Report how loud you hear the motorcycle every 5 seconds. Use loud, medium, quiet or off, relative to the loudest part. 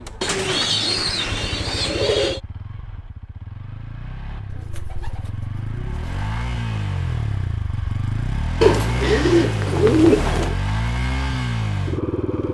quiet, loud, loud.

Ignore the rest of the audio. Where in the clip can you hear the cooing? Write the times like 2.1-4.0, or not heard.
0.2-2.4, 4.5-6.3, 8.6-10.6.